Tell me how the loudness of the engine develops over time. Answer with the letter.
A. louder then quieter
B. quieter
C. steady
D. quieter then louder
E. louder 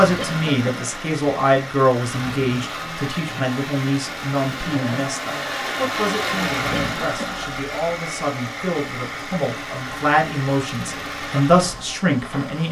A.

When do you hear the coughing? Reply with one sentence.
You can hear the coughing from 0.1 to 0.9 s and from 6.7 to 7.4 s.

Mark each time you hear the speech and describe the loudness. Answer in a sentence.
The speech can be heard from 0.0 to 12.6 s, getting quieter then louder.